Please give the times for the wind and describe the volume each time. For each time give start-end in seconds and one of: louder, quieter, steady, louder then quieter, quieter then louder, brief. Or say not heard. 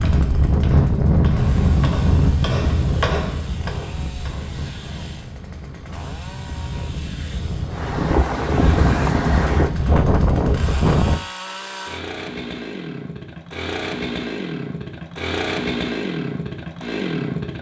0.0-11.2 quieter then louder.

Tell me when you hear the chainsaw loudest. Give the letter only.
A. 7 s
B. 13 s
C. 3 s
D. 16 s
D.